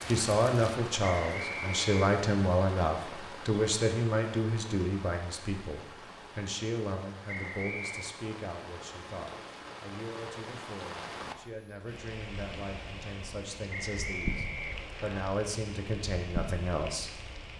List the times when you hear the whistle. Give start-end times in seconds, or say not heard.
1.1-2.0, 7.2-8.2, 13.7-15.2.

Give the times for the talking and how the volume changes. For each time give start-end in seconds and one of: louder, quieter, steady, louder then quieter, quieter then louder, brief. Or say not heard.
0.1-17.3 quieter then louder.